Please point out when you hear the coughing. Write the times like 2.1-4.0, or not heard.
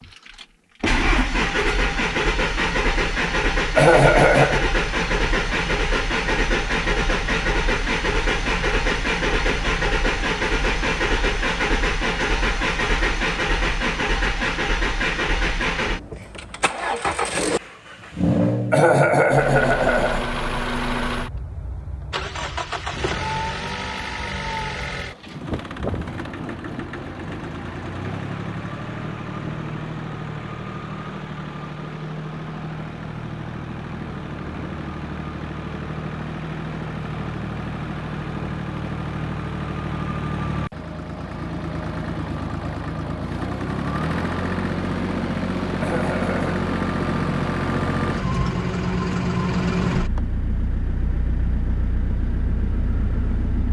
3.8-4.7, 18.7-20.2, 45.8-46.6.